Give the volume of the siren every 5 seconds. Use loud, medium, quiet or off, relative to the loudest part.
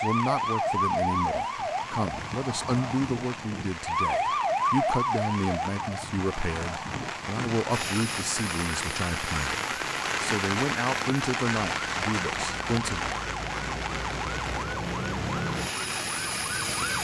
loud, medium, medium, loud.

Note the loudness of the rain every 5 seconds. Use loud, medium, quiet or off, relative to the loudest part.
medium, loud, loud, medium.